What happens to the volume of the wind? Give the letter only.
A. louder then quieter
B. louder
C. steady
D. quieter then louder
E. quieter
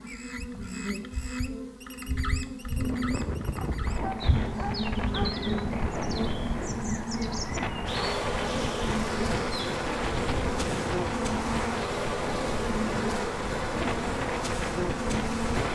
C.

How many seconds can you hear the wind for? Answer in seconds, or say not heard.
13 s.